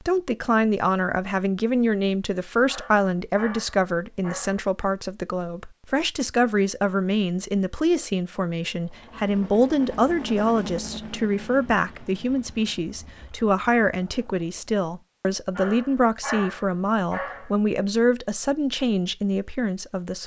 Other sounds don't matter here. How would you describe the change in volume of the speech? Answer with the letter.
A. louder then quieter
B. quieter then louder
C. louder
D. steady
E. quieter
D.